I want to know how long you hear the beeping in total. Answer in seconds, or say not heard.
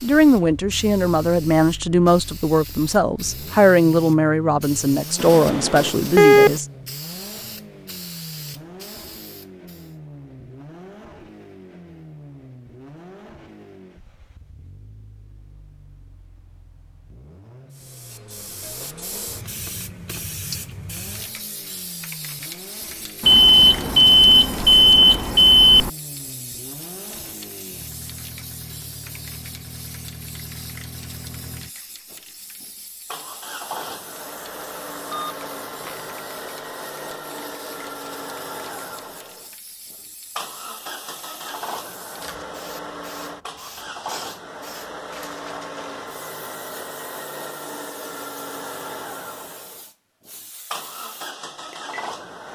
5 s.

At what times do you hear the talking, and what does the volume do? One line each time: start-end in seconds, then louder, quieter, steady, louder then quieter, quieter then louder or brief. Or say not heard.
0.0-6.7 steady.